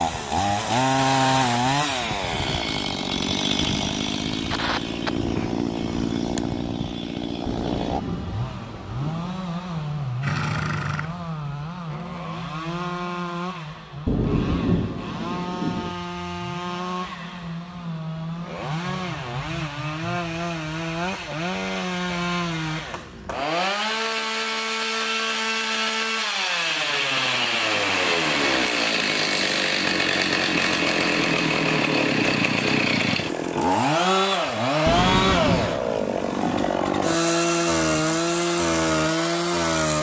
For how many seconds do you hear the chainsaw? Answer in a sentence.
The chainsaw can be heard for 40 seconds in total.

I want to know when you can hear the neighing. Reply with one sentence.
You can hear the neighing from 10.2 to 11.3 s.